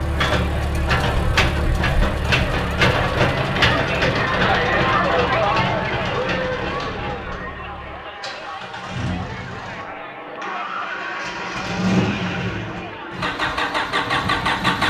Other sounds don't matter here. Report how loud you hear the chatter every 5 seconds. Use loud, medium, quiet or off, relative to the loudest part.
loud, loud, medium.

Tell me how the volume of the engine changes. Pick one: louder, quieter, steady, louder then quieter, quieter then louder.
quieter then louder.